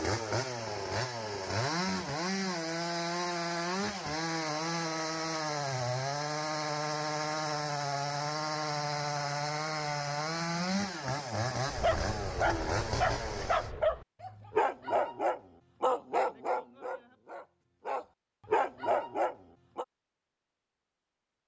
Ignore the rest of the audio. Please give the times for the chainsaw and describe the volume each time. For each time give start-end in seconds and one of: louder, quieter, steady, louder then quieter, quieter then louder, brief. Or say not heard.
0.0-13.7 steady.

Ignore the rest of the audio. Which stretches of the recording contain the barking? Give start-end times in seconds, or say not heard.
11.7-19.9.